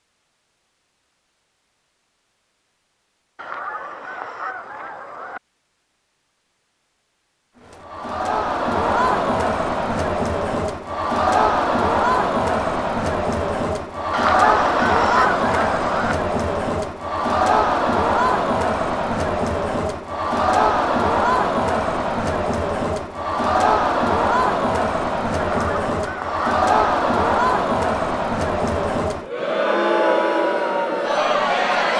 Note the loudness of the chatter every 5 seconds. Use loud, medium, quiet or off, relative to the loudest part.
off, loud, loud, loud, loud, loud, loud.